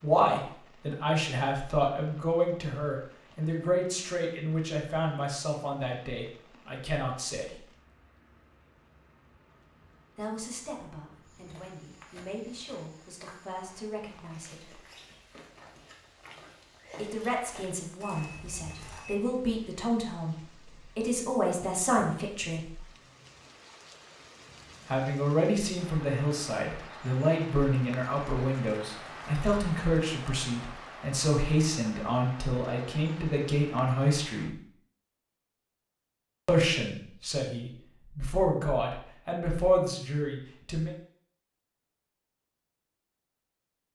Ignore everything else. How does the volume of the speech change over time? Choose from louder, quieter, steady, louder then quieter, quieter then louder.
quieter then louder.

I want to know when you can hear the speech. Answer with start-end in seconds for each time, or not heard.
0.0-7.7, 10.2-14.8, 16.9-22.8, 24.9-34.5, 36.5-40.9.